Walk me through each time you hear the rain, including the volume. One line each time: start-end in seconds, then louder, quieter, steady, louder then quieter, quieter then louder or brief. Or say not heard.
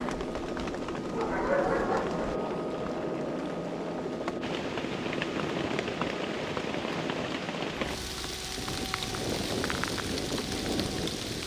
0.0-11.4 louder.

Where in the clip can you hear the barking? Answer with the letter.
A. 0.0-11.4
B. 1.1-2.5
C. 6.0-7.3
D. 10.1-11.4
B.